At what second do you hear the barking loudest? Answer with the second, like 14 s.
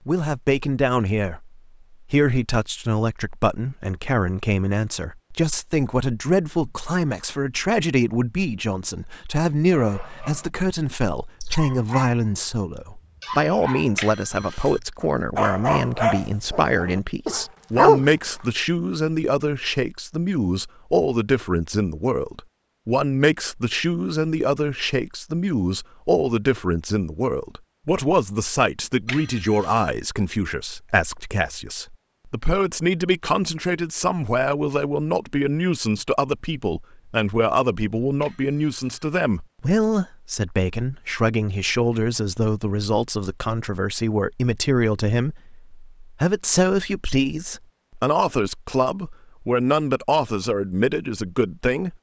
18 s.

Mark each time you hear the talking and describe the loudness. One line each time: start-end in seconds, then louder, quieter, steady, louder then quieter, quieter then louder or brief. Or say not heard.
0.1-51.9 steady.